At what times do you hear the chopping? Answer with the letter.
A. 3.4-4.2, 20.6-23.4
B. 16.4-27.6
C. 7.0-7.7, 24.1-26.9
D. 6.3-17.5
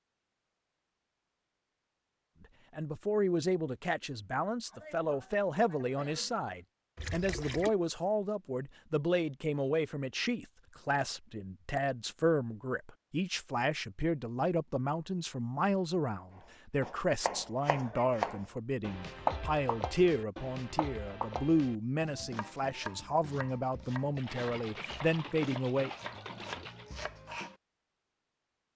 B.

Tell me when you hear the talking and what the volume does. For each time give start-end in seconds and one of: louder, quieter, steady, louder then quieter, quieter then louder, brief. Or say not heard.
2.4-25.9 steady.